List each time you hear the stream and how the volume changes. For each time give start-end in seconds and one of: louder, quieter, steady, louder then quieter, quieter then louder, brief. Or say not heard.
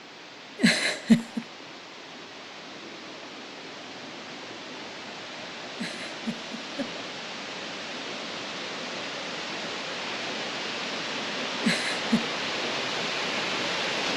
0.0-14.1 louder.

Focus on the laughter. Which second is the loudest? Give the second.
1 s.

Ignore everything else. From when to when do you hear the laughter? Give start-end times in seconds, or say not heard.
0.6-1.4, 5.8-6.9, 11.6-12.2.